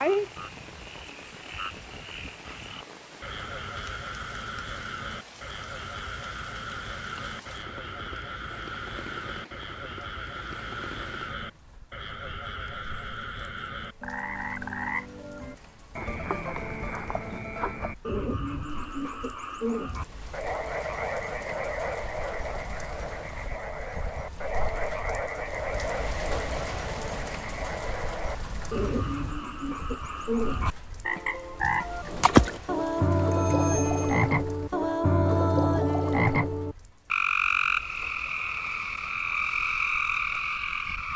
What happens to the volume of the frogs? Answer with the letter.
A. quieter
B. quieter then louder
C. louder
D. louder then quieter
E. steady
C.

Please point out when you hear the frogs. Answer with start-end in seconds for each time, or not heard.
0.0-41.1.